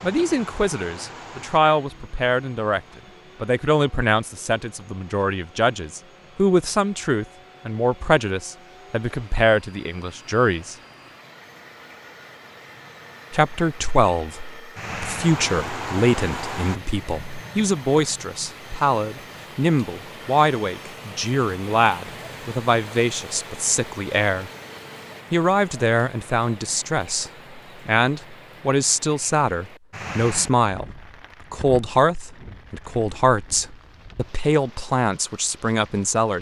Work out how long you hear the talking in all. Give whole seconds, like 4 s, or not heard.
32 s.